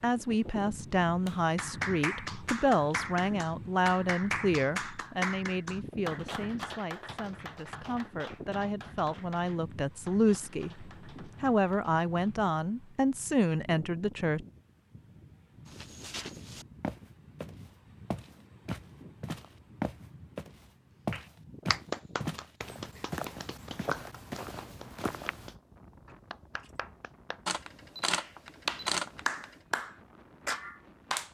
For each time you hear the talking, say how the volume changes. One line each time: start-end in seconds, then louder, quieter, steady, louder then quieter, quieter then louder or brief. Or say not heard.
0.0-14.4 quieter then louder.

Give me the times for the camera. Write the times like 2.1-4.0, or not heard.
27.4-29.6.